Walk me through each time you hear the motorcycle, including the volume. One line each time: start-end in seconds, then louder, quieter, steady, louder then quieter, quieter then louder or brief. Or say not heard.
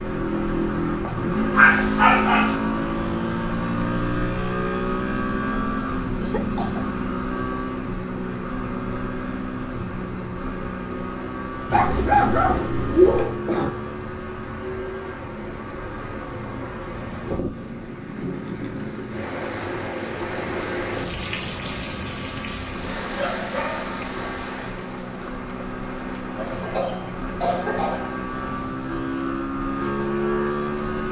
0.0-31.0 quieter then louder.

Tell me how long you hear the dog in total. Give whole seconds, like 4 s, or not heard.
4 s.